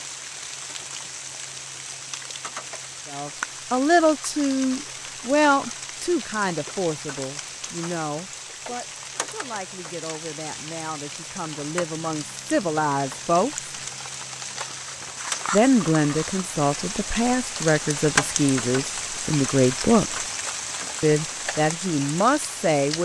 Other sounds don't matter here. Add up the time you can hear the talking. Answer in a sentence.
You can hear the talking for 17 seconds altogether.